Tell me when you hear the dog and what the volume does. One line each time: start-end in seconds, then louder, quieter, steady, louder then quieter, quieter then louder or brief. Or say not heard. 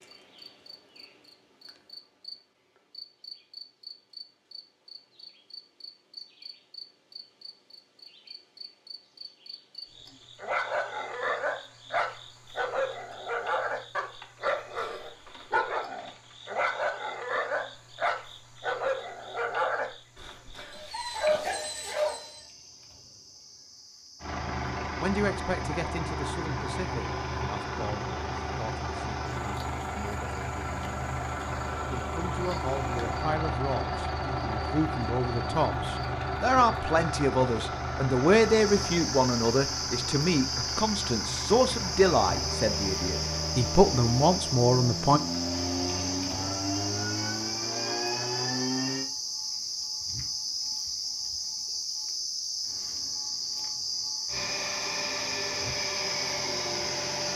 10.4-22.4 steady.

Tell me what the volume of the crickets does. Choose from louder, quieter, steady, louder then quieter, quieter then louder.
louder.